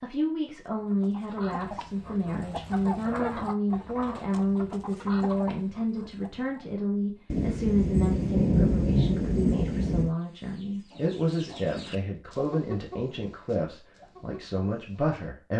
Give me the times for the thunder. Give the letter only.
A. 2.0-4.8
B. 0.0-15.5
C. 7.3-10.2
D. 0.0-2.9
C.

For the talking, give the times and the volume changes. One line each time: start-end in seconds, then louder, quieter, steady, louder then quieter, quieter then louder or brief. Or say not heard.
0.0-15.5 steady.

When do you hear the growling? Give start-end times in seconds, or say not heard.
not heard.